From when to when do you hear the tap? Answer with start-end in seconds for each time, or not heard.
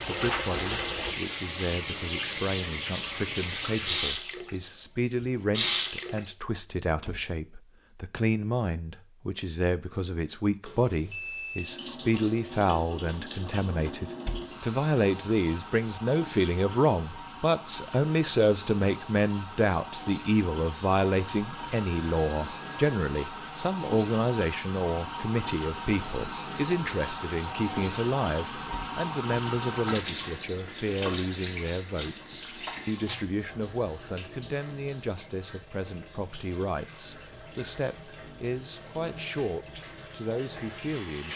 0.0-6.2, 11.6-41.3.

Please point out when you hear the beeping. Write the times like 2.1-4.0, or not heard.
10.6-11.8, 20.7-23.1.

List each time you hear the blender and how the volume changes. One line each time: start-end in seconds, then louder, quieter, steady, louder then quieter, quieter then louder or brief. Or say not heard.
not heard.